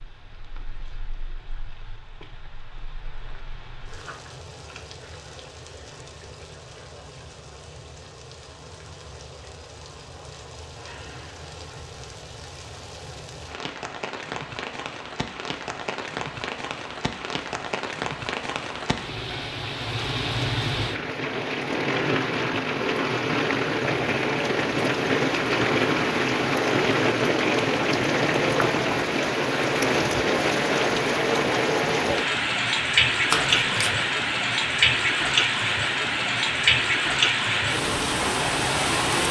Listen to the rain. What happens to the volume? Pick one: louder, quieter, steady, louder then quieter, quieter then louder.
louder.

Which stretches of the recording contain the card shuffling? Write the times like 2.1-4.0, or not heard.
33.3-34.0.